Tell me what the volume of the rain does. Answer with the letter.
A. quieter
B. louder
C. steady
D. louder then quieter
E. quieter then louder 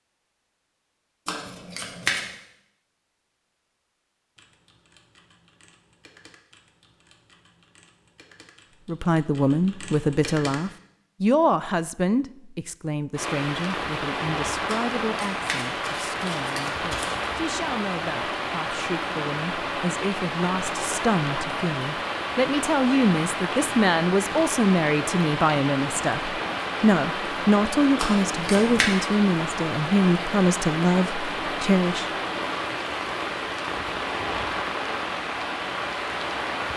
C.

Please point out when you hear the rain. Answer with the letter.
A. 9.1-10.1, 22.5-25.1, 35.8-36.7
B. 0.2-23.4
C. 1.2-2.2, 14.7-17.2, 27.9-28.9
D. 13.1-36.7
D.